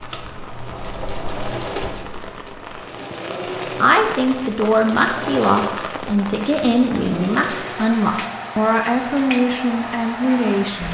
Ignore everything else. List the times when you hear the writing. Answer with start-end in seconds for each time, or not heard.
0.0-2.9.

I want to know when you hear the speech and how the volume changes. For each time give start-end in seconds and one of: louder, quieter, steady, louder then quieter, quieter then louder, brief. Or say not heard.
3.8-10.8 steady.